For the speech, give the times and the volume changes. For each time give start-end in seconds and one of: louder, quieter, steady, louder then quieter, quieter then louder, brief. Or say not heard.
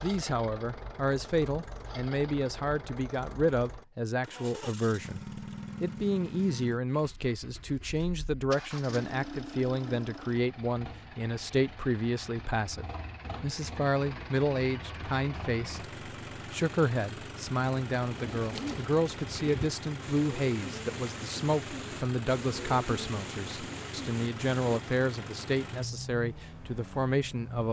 0.0-27.6 steady.